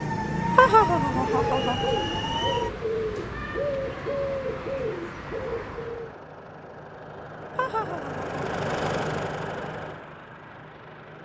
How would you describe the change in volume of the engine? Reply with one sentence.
The loudness of the engine goes up, then down.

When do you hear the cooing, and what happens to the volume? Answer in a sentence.
The cooing can be heard from 0.2 to 6.2 s, at a steady volume.